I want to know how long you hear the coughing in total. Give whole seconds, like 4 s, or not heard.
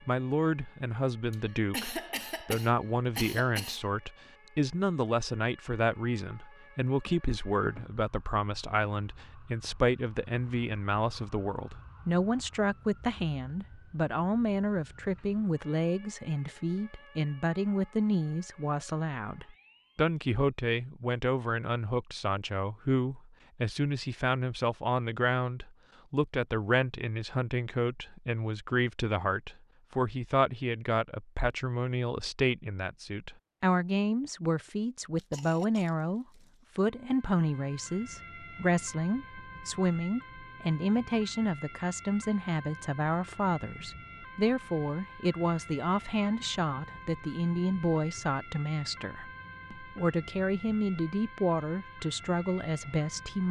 4 s.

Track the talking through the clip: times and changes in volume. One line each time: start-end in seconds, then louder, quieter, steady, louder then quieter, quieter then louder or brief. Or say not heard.
0.1-53.4 steady.